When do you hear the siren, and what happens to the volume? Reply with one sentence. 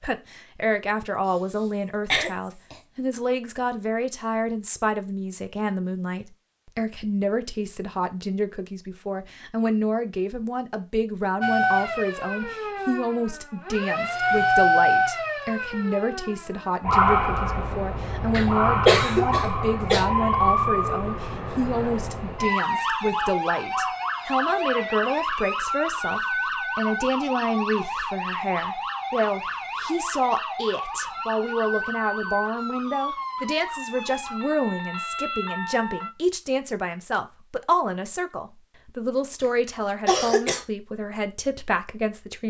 The siren can be heard from 11.4 to 36.1 s, getting quieter.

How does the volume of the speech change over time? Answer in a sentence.
The loudness of the speech stays about the same.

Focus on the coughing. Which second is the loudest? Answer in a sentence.
The loudest moment of the coughing is at 19 seconds.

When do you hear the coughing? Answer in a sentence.
The coughing can be heard from 1.2 to 2.8 s, from 18.3 to 20.1 s and from 39.4 to 40.6 s.